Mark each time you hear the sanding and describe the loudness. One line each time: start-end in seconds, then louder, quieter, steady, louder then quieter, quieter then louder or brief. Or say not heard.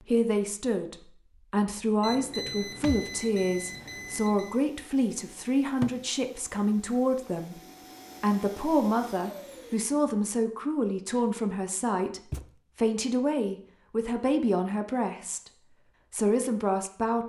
not heard.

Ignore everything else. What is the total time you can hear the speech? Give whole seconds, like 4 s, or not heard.
16 s.